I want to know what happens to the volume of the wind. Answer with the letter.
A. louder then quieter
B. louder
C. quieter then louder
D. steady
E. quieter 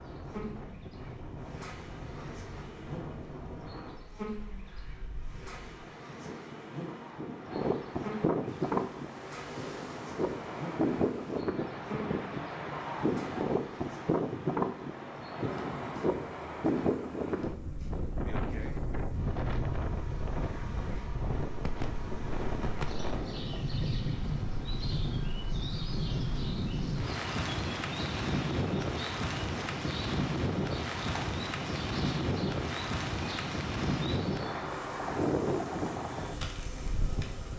B.